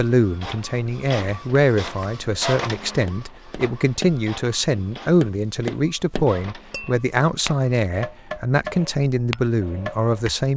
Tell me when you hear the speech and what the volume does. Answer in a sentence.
The speech can be heard from 0.0 to 10.5 s, at a steady volume.